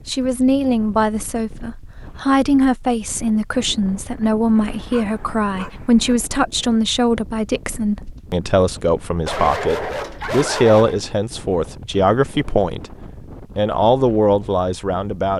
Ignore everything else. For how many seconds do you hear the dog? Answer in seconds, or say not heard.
3 s.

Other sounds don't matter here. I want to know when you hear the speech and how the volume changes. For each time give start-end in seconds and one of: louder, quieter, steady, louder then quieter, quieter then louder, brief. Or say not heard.
0.1-12.9 steady
13.6-15.3 brief.